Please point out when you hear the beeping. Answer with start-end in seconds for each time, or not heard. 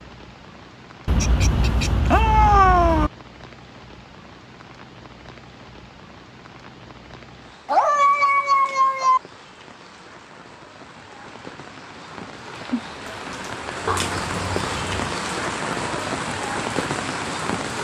not heard.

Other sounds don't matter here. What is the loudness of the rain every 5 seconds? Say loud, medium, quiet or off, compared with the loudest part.
quiet, quiet, medium, loud.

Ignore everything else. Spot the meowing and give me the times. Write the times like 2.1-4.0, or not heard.
1.1-3.1, 7.7-9.2, 13.8-15.2.